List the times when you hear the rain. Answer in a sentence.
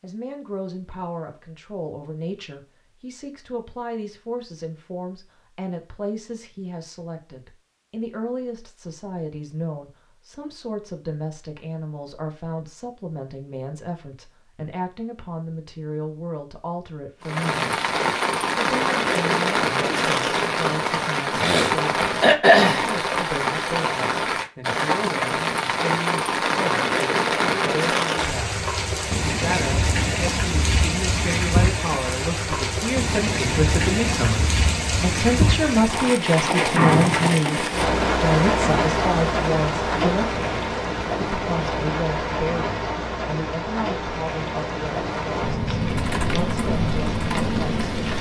You can hear the rain from 17.2 to 48.1 s.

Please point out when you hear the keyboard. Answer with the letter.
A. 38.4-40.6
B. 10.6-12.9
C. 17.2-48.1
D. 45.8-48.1
D.